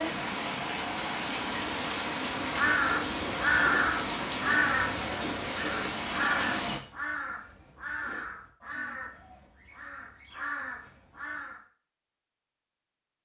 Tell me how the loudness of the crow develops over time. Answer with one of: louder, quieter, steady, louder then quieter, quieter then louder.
quieter.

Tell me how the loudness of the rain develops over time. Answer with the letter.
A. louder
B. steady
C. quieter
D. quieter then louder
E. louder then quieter
B.